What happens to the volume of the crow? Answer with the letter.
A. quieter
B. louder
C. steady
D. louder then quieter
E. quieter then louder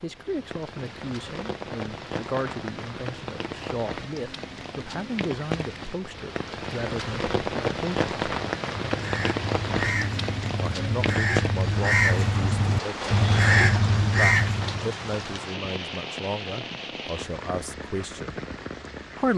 B.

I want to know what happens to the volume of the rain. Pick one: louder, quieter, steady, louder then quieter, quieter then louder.
louder then quieter.